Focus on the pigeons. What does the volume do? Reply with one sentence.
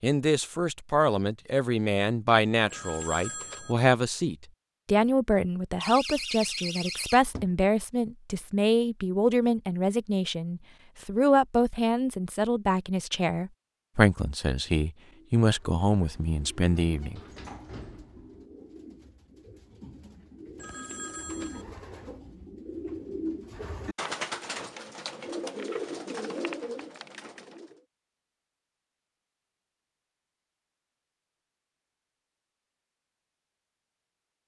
The volume of the pigeons goes up.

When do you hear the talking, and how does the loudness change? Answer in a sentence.
You can hear the talking from 0.0 to 17.2 s, at a steady volume.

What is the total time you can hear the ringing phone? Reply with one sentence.
The ringing phone can be heard for 2 seconds in total.